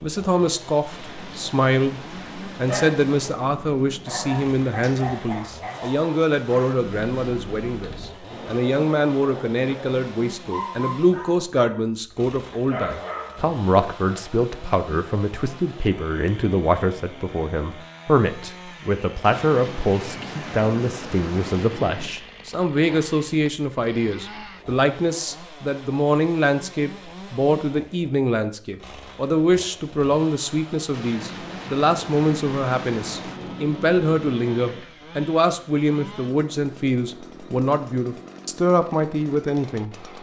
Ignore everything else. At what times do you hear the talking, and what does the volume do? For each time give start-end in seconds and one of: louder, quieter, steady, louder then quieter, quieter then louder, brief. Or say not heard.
0.0-39.9 steady.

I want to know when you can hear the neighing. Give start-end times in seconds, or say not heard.
not heard.